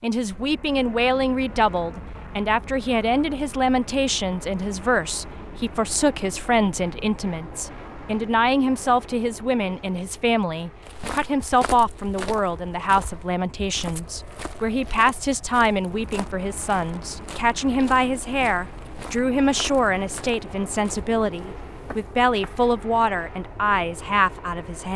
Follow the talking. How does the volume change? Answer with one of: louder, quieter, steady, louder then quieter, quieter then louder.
steady.